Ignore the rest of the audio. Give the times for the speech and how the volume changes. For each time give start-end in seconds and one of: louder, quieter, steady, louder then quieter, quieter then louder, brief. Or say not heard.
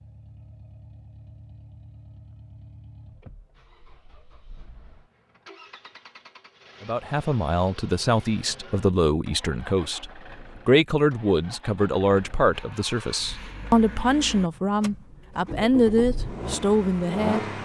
6.8-17.4 steady.